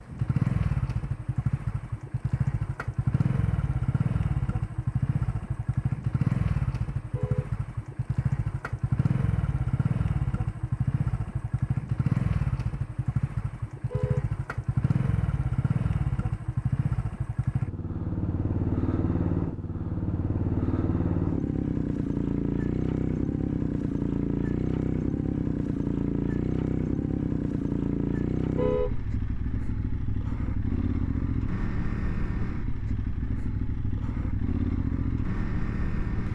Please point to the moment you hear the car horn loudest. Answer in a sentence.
The volume of the car horn peaks at 29 seconds.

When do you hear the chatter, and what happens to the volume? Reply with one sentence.
The chatter can't be heard in this clip.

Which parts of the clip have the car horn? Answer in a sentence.
You can hear the car horn from 7.0 to 7.5 s, from 13.8 to 14.3 s and from 28.5 to 29.0 s.